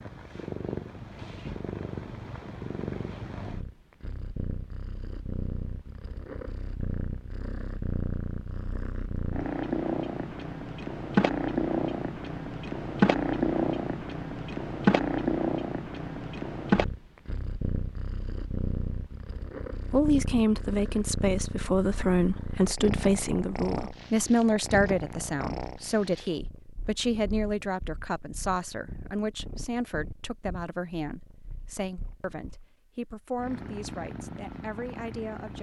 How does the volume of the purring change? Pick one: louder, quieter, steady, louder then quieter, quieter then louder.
louder then quieter.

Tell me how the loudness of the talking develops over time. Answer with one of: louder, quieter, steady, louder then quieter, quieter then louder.
quieter.